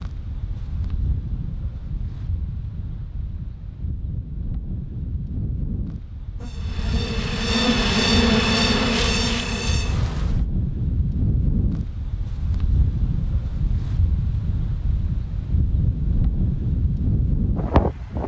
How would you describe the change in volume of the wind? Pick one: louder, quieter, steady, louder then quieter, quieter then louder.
louder.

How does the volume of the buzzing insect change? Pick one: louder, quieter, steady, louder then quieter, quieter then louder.
louder then quieter.